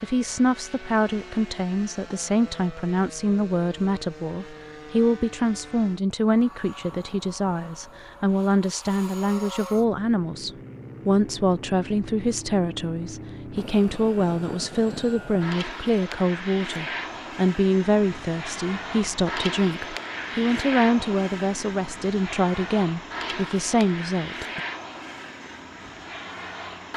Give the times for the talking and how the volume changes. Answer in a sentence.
You can hear the talking from 0.0 to 24.6 s, at a steady volume.